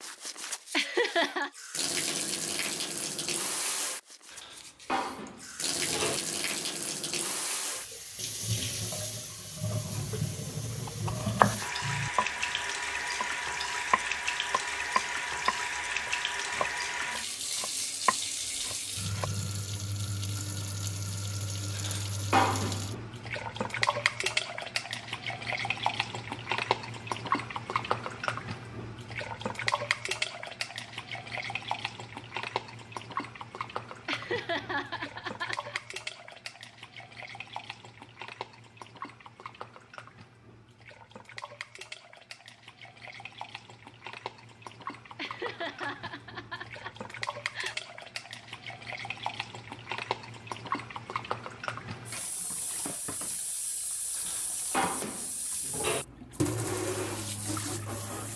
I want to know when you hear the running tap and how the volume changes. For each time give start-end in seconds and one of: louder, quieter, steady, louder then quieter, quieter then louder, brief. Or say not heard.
0.0-58.3 quieter then louder.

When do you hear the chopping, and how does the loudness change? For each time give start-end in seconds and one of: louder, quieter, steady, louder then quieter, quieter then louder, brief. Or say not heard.
9.9-12.2 brief
13.9-19.3 quieter then louder.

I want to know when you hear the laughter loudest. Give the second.
1 s.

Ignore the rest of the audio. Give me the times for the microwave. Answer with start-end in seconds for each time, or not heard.
not heard.